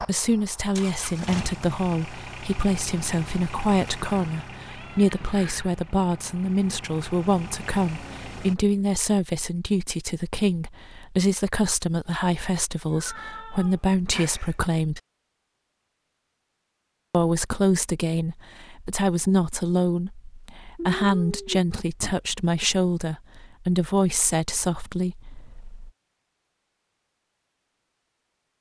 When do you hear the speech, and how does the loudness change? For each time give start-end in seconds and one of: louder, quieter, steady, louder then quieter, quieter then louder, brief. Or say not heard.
0.0-15.0 steady
17.1-25.9 steady.